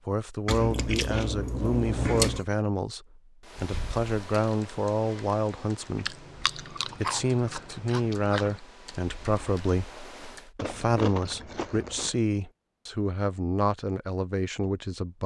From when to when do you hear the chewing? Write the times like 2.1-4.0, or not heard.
0.5-2.5, 6.0-8.5, 10.6-12.2.